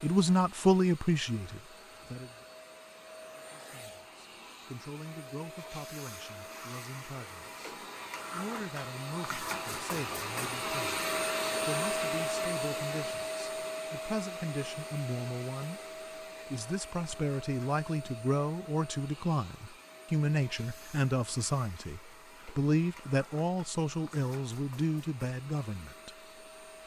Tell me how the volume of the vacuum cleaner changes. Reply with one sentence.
The loudness of the vacuum cleaner goes up, then down.